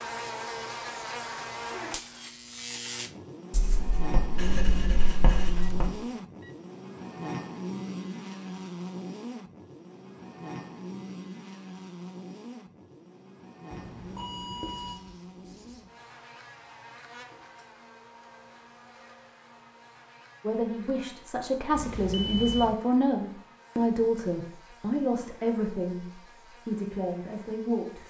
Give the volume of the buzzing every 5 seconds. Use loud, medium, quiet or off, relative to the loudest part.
loud, loud, medium, quiet, quiet, quiet.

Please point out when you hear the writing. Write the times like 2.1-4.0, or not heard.
3.5-5.9, 14.6-15.8.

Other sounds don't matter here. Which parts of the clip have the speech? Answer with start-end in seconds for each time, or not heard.
20.4-28.0.